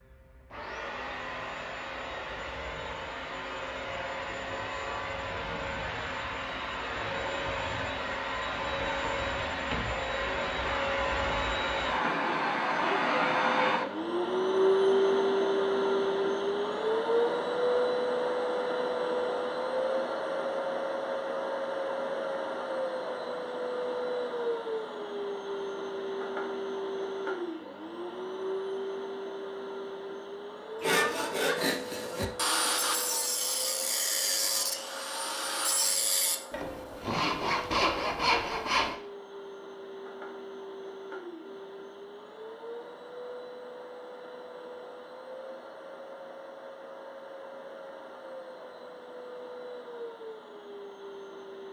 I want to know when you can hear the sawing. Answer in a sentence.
You can hear the sawing from 30.8 to 39.0 s.